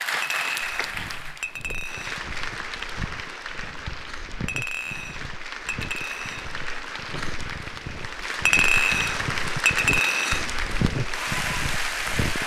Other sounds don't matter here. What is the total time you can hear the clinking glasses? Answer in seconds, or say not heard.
6 s.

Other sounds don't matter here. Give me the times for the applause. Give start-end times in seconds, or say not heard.
0.0-12.4.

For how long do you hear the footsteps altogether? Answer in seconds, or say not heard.
12 s.